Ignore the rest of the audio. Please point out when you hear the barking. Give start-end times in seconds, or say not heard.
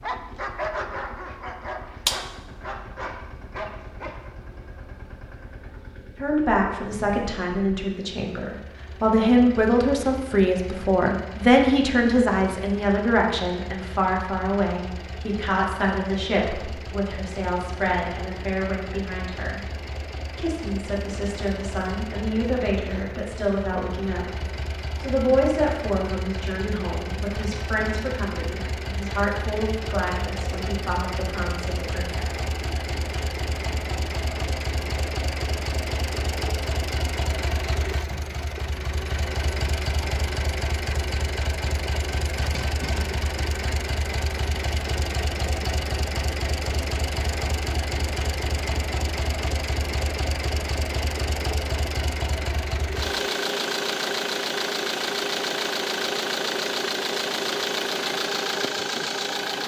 0.0-4.3.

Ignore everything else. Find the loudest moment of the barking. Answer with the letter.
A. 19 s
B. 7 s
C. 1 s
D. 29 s
C.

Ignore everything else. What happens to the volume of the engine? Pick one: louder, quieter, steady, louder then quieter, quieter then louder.
louder.